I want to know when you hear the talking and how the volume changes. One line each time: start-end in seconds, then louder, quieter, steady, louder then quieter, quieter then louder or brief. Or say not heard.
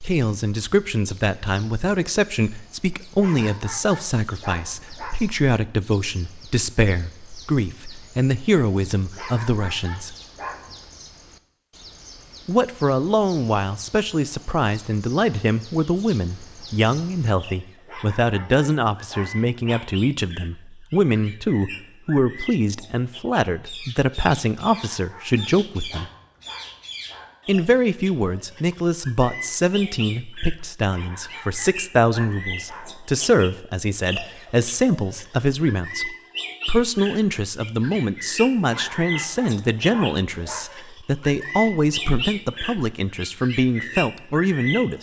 0.0-10.2 steady
12.4-26.1 steady
27.4-44.9 steady.